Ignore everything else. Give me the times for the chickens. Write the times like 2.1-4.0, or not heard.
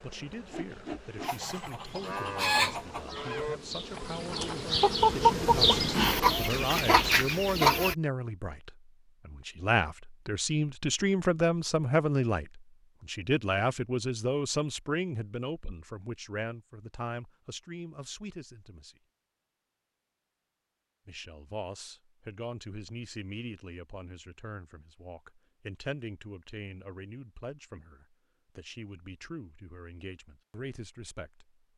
1.2-8.0.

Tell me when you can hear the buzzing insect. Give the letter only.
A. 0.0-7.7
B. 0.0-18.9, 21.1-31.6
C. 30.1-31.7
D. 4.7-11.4
A.